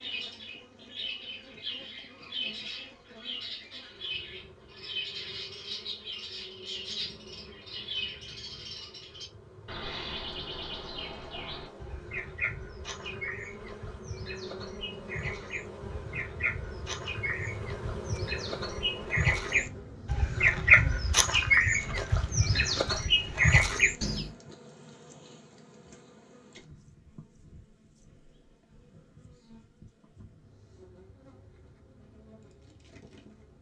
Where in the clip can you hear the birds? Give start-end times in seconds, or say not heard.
0.0-24.3.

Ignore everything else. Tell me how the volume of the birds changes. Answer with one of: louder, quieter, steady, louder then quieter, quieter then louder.
louder.